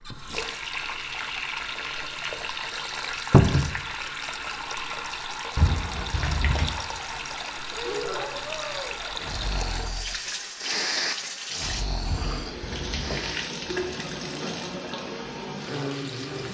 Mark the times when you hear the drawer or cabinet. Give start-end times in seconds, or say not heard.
3.3-3.7, 5.5-6.7, 12.1-13.2.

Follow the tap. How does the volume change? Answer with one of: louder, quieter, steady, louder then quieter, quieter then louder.
steady.